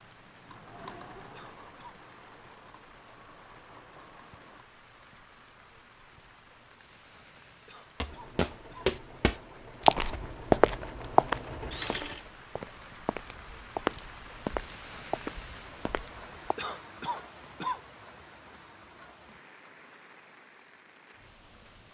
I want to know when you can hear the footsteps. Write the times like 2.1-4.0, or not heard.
8.0-16.6.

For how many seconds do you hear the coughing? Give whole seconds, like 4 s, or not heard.
3 s.